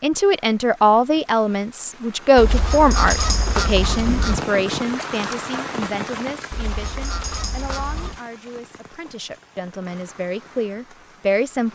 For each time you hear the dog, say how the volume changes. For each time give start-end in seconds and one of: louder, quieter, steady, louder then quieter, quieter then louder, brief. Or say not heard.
not heard.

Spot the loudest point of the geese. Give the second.
3 s.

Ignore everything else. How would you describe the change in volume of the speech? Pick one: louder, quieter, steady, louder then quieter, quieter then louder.
quieter then louder.